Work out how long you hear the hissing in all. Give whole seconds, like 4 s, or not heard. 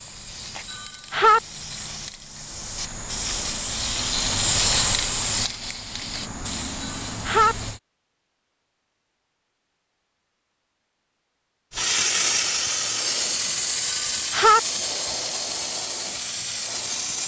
13 s.